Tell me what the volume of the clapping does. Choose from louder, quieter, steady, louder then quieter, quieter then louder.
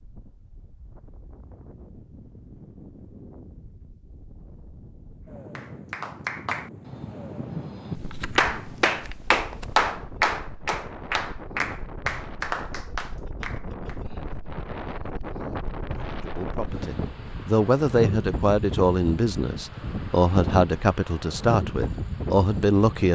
louder then quieter.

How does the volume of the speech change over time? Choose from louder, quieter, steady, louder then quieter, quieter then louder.
steady.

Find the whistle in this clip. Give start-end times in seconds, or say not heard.
not heard.